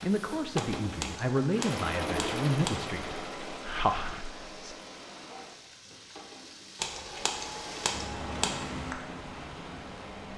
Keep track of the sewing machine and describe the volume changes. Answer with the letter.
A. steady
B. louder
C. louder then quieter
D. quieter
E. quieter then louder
D.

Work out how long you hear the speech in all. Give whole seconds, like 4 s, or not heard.
5 s.